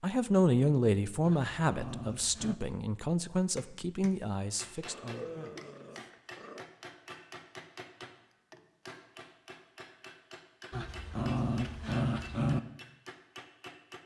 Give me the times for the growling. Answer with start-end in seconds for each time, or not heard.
1.2-2.5, 4.8-6.7, 10.7-12.6.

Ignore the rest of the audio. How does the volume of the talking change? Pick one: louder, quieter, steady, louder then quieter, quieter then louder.
quieter.